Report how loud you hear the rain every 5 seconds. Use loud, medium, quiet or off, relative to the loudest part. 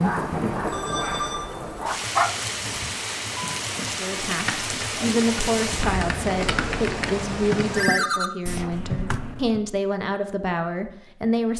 loud, loud, off.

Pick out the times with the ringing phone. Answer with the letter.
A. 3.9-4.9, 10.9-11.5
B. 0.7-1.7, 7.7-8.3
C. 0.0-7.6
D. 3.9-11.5
B.